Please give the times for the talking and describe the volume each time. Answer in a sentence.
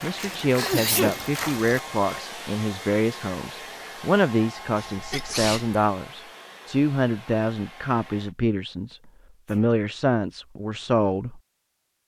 You can hear the talking from 0.0 to 11.4 s, at a steady volume.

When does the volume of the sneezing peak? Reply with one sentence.
The loudest moment of the sneezing is at 1 second.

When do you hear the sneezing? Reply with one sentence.
The sneezing can be heard from 0.1 to 1.2 s, from 4.8 to 5.8 s and from 8.9 to 9.7 s.